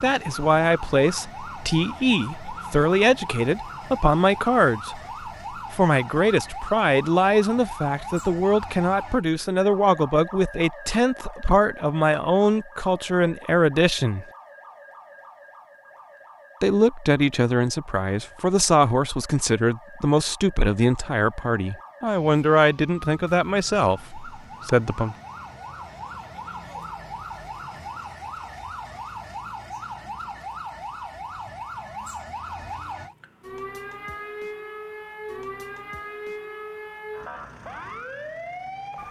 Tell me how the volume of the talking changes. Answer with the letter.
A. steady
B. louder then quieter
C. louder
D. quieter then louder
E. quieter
A.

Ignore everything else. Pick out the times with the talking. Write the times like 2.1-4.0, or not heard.
0.0-14.2, 16.6-25.1.